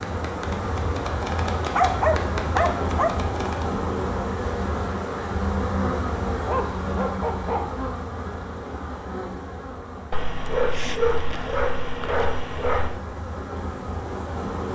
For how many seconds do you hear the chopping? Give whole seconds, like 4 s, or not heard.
4 s.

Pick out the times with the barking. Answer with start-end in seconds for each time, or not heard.
1.7-3.1, 6.5-7.9, 10.1-13.0.